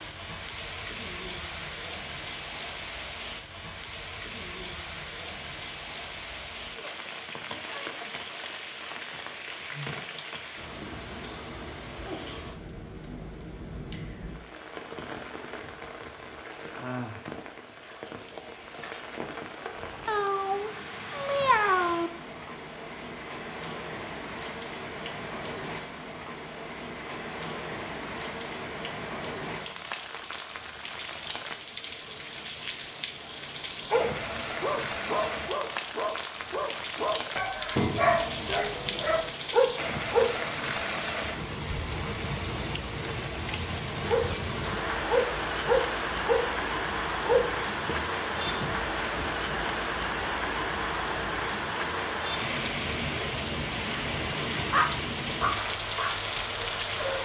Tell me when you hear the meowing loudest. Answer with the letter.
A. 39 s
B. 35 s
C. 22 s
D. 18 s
C.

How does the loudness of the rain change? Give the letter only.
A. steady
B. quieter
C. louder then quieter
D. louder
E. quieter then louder
D.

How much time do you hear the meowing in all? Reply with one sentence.
You can hear the meowing for 3 seconds altogether.